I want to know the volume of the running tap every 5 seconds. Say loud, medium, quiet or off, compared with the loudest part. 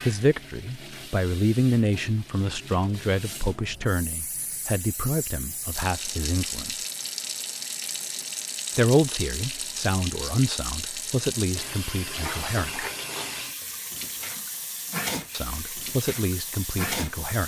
medium, loud, loud, loud.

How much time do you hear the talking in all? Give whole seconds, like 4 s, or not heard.
13 s.